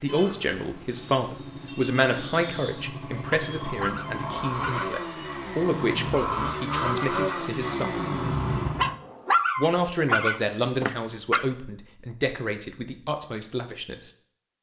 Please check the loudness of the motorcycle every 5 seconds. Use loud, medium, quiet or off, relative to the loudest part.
medium, loud, off.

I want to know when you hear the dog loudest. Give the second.
9 s.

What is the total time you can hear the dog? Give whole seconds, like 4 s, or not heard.
4 s.